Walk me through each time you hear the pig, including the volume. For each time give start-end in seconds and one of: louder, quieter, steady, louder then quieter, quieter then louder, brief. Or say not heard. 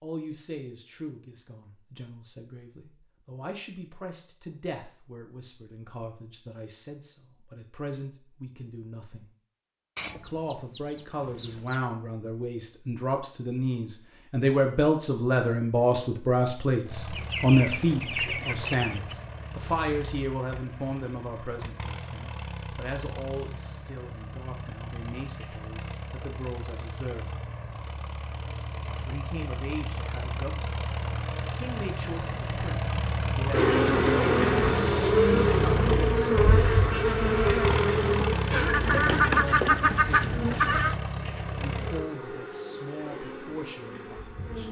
not heard.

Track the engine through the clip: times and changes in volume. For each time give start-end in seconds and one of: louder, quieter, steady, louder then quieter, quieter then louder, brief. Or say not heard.
16.9-42.0 louder.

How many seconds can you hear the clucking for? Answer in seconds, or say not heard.
6 s.